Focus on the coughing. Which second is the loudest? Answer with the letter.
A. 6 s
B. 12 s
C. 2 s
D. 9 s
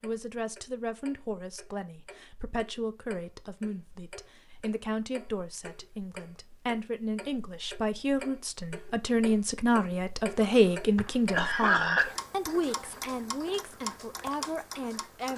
B.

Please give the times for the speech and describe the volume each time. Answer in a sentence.
You can hear the speech from 0.0 to 15.3 s, getting louder then quieter.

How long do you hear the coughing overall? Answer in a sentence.
You can hear the coughing for 2 seconds altogether.